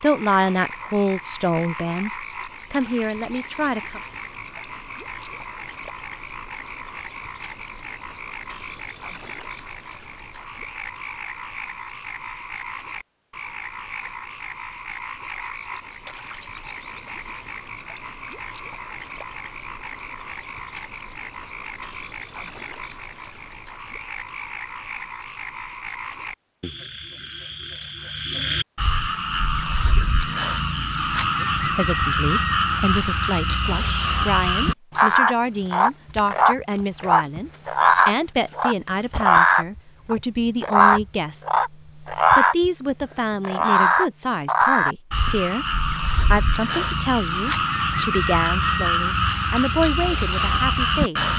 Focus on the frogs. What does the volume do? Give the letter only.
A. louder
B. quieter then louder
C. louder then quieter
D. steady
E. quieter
A.